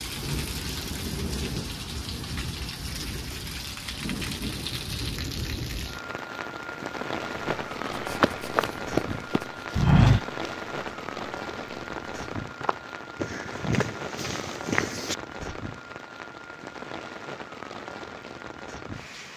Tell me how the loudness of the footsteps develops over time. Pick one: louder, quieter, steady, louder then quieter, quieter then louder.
louder then quieter.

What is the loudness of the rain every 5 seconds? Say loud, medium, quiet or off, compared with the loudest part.
loud, loud, loud, medium.